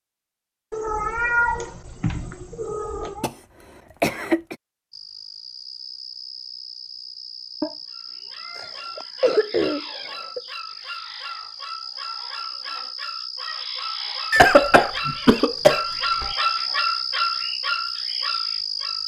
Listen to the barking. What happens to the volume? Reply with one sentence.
The volume of the barking goes up.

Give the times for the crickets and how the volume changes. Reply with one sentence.
The crickets can be heard from 4.9 to 19.0 s, getting louder.